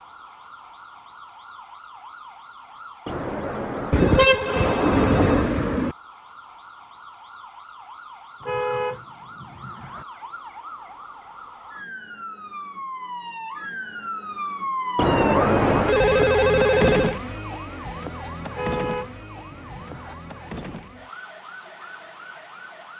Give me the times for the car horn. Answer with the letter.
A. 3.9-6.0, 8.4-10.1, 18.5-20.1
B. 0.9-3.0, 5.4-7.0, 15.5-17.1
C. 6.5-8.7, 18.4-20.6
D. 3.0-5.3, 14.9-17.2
A.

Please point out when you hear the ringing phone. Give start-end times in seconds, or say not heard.
3.0-5.3, 14.9-17.2.